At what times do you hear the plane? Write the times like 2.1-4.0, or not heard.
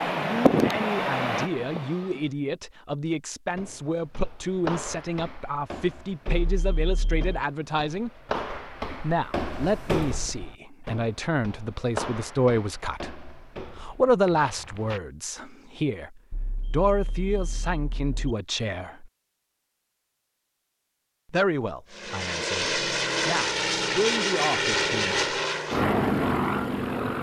0.0-2.3, 21.9-27.1.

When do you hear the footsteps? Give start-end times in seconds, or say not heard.
3.5-15.0.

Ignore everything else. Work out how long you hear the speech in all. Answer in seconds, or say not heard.
22 s.